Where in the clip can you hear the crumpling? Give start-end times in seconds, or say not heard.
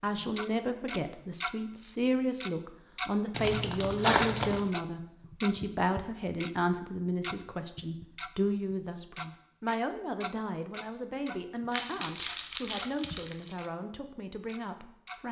3.3-4.7, 11.7-13.6.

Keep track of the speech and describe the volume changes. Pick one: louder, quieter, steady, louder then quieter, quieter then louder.
quieter.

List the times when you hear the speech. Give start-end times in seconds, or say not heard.
0.0-15.2.